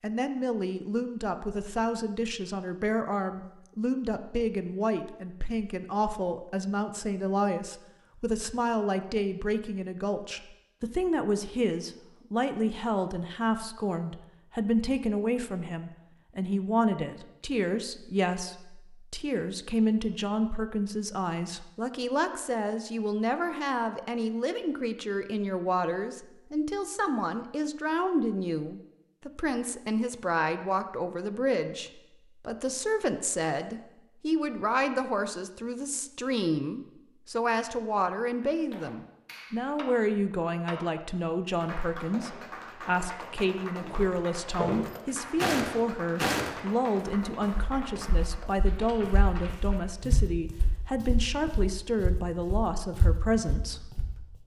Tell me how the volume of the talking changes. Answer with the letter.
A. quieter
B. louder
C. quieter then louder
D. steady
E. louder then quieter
D.